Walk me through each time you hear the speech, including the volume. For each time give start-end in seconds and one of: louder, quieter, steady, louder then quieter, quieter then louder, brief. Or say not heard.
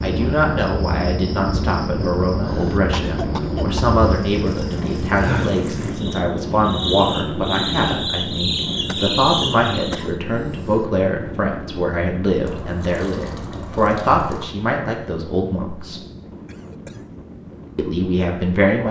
0.0-16.0 steady
17.8-18.8 brief.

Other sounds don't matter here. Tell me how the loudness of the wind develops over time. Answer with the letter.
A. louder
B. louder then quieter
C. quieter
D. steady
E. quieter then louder
C.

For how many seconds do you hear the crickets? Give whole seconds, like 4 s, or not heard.
10 s.